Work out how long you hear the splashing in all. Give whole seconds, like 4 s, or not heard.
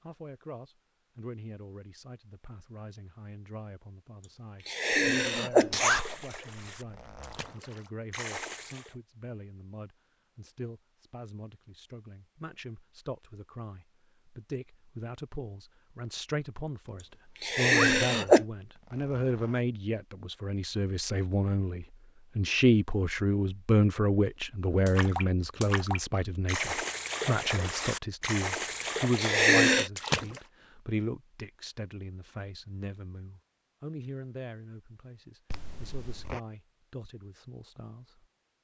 9 s.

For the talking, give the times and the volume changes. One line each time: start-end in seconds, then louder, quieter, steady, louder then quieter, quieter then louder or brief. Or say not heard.
0.0-38.2 louder then quieter.